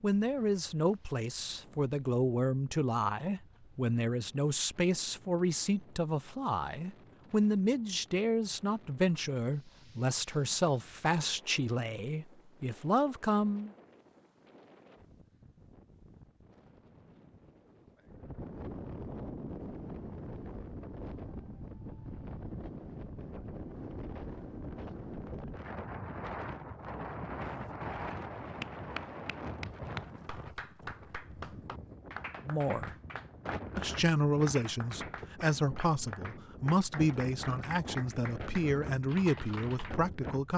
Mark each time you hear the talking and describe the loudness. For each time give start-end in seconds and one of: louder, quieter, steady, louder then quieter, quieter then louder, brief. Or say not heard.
0.0-13.7 steady
32.5-33.0 brief
33.8-40.5 steady.